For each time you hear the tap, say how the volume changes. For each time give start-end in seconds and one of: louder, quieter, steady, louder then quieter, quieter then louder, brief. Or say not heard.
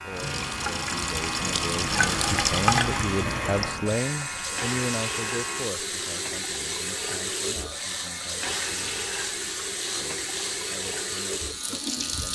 0.0-12.2 quieter.